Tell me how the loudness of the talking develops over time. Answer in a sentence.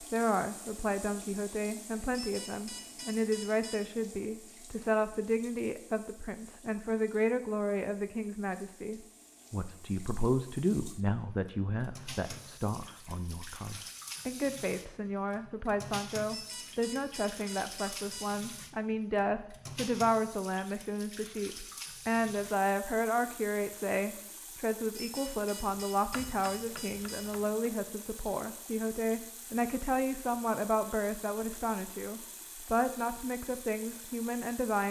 The volume of the talking stays about the same.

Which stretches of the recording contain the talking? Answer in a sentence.
The talking can be heard from 0.0 to 34.8 s.